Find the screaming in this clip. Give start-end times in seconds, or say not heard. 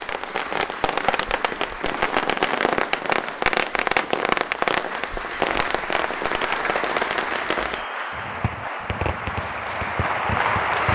not heard.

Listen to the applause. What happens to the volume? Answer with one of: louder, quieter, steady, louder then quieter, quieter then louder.
louder.